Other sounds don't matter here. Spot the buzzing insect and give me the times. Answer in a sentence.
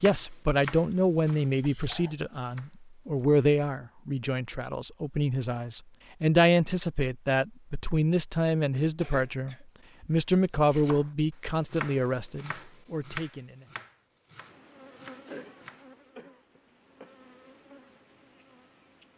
The buzzing insect can be heard from 14.4 to 19.1 s.